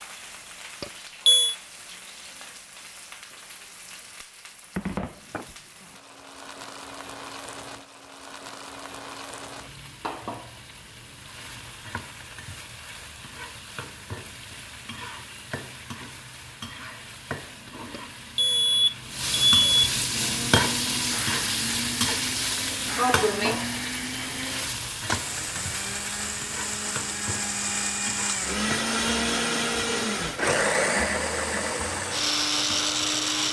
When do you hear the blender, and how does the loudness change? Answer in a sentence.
You can hear the blender from 20.1 to 33.4 s, getting louder.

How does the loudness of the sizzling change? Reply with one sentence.
The loudness of the sizzling goes up, then down.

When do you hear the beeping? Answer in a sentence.
You can hear the beeping from 0.8 to 1.6 s and from 17.9 to 19.9 s.